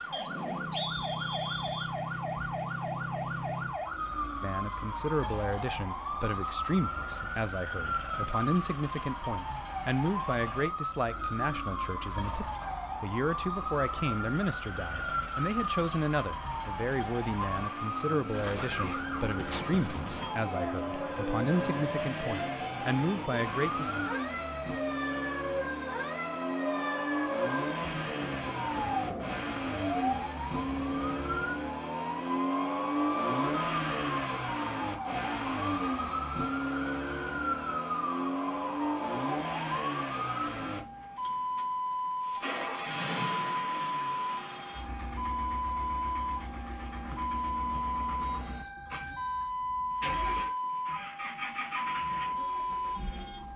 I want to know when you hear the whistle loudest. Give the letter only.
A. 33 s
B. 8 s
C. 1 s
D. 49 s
C.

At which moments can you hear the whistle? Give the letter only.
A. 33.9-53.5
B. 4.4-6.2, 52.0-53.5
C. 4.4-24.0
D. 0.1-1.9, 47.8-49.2
D.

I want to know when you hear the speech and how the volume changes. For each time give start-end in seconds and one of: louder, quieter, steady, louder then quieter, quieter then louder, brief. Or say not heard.
4.4-24.0 steady.